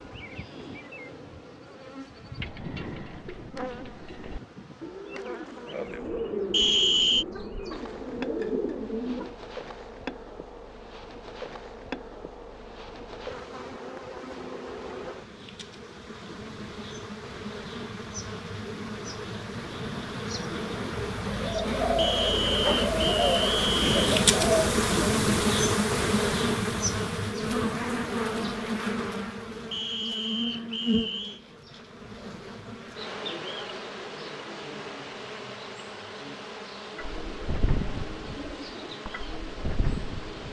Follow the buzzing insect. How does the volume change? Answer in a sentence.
The volume of the buzzing insect goes up, then down.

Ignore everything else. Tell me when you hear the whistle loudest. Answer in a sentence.
The loudest moment of the whistle is at 7 seconds.